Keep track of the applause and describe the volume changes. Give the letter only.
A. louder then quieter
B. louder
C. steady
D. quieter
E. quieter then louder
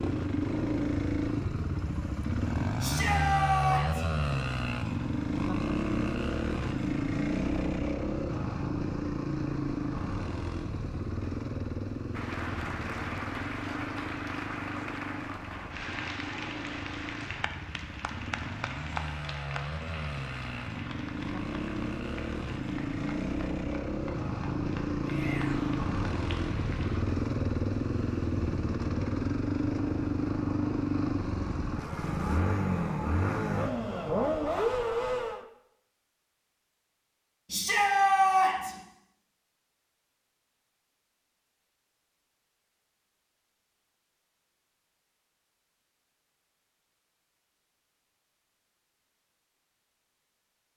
D.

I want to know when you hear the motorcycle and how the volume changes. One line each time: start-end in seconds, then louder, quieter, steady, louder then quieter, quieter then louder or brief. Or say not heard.
0.0-35.5 quieter then louder.